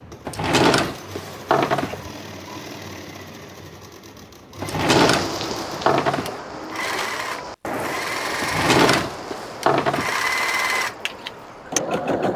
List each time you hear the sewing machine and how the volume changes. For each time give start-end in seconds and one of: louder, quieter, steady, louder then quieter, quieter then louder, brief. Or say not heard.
0.0-12.3 louder.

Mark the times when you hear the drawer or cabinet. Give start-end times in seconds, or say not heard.
0.2-2.0, 4.6-6.4, 8.4-10.2.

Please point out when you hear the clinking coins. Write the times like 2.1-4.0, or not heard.
not heard.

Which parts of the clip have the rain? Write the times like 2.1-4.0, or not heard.
5.0-12.1.